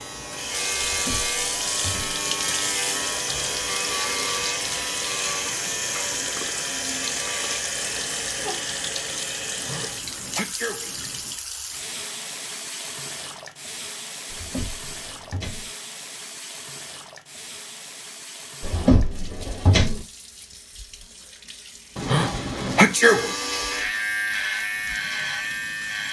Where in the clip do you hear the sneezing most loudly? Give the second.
23 s.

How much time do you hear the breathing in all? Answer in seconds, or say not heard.
not heard.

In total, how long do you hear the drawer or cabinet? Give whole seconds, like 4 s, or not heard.
4 s.